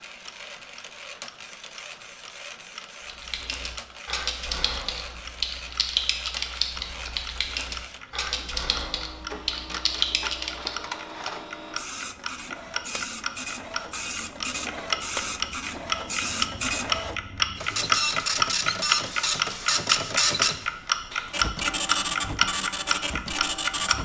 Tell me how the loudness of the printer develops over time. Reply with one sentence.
The volume of the printer goes up.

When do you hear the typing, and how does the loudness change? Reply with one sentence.
The typing can be heard from 3.0 to 10.7 s, at a steady volume.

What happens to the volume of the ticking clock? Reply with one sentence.
The loudness of the ticking clock goes up.